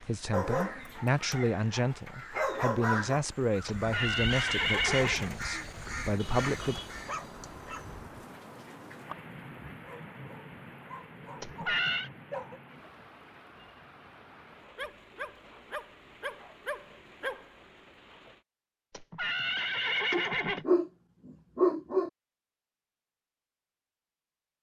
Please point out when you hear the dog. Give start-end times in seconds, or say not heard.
0.3-3.2, 5.5-8.2, 9.8-12.6, 14.8-17.4, 20.1-22.1.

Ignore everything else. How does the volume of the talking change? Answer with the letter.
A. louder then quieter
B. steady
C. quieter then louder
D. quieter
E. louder
B.